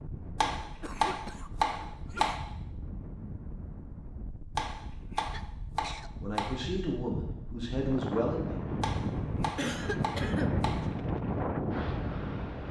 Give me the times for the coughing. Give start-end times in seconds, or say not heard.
0.6-2.4, 5.2-6.1, 9.6-10.7.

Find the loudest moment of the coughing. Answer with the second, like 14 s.
10 s.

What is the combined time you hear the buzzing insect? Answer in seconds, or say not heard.
not heard.